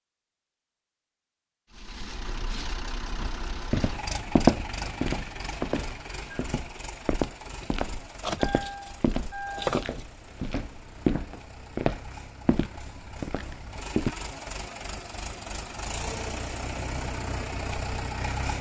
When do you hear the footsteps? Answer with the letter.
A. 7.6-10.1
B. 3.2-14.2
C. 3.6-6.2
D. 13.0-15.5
B.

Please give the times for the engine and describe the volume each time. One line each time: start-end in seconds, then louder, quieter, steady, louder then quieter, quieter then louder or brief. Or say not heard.
1.7-18.5 quieter then louder.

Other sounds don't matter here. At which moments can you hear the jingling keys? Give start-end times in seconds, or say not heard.
7.6-10.1.